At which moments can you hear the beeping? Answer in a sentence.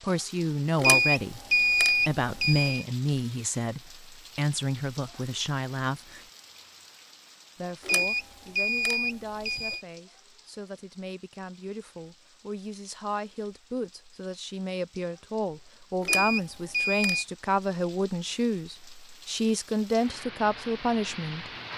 You can hear the beeping from 0.8 to 2.9 s, from 7.8 to 9.8 s and from 16.0 to 17.2 s.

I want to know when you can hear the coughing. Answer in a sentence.
The coughing can't be heard in this clip.